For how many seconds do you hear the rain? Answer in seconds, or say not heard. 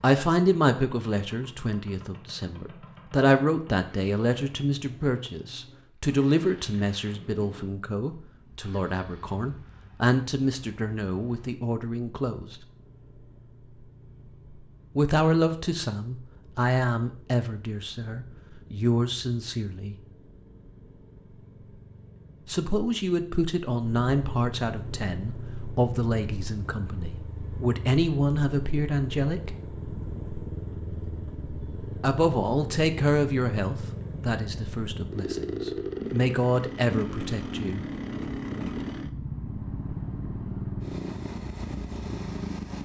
not heard.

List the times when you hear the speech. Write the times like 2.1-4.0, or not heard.
0.0-12.6, 14.9-19.9, 22.4-29.6, 32.0-37.9.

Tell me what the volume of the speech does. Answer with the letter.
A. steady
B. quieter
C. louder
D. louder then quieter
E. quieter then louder
A.